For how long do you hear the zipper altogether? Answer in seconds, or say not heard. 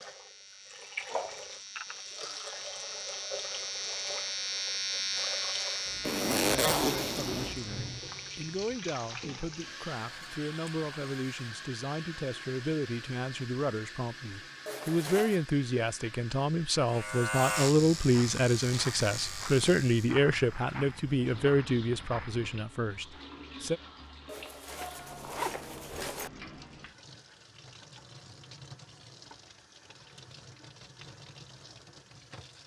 4 s.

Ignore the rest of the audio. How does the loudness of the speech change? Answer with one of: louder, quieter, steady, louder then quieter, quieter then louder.
louder.